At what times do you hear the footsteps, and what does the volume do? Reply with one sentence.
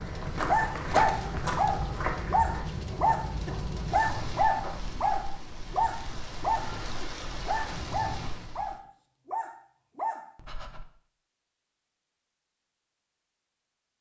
You can hear the footsteps from 0.0 to 4.8 s, getting quieter.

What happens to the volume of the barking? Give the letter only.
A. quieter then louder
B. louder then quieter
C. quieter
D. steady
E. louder
C.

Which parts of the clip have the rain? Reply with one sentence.
The rain can be heard from 0.0 to 8.8 s.